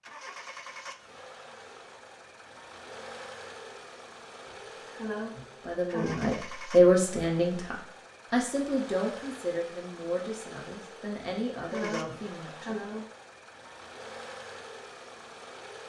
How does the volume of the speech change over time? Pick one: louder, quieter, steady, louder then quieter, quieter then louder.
quieter.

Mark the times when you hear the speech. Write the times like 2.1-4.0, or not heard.
5.7-12.8.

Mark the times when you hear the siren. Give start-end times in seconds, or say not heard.
not heard.